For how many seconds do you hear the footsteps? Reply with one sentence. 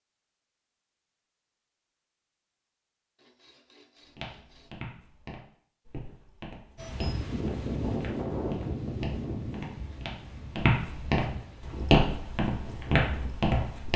You can hear the footsteps for 10 seconds altogether.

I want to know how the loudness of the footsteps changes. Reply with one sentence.
The loudness of the footsteps goes up.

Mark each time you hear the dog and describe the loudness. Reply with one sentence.
The dog can't be heard in this clip.